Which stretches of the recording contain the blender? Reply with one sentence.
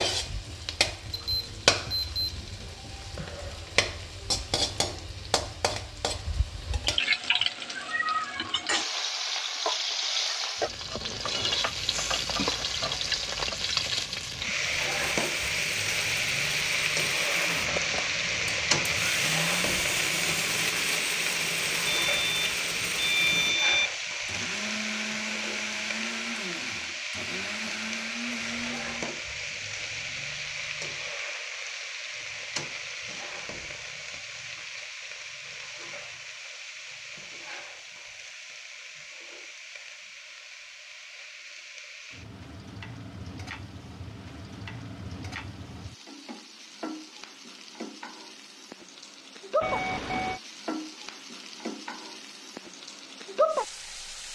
You can hear the blender from 14.6 to 29.1 s.